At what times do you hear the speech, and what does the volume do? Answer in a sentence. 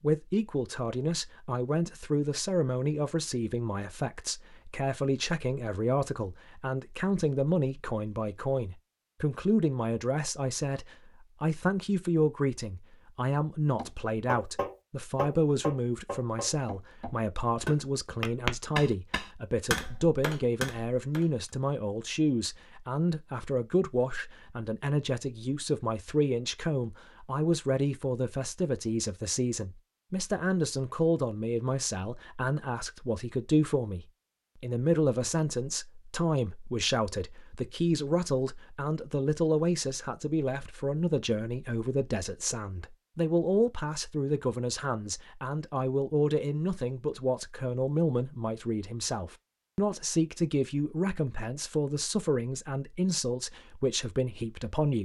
You can hear the speech from 0.0 to 54.9 s, at a steady volume.